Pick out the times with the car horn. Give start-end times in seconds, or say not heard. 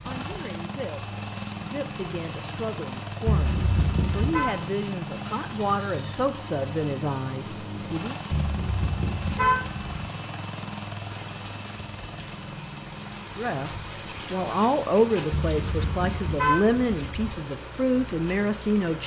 3.2-4.5, 8.3-9.9, 15.3-17.3.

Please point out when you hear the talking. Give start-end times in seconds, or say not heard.
0.0-8.2, 13.3-19.0.